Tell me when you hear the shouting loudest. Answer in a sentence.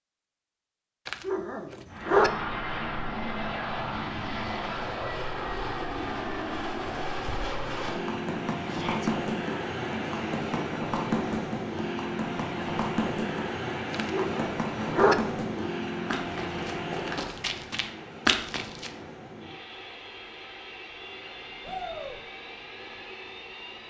The volume of the shouting peaks at 22 seconds.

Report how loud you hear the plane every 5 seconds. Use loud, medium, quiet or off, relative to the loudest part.
loud, loud, loud, loud, medium.